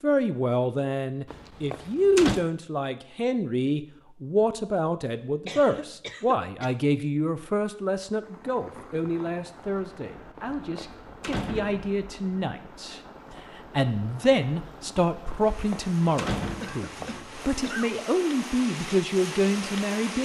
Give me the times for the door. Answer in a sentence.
The door can be heard from 1.2 to 2.5 s, from 10.3 to 11.9 s and from 15.3 to 17.6 s.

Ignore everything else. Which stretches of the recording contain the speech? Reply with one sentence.
You can hear the speech from 0.0 to 20.2 s.